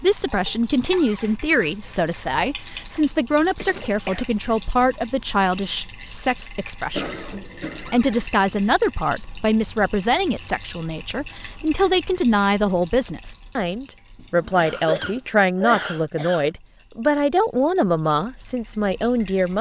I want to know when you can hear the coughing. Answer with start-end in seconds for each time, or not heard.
3.6-4.2, 6.9-8.2, 14.6-16.5.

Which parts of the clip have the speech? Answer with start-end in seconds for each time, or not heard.
0.0-19.5.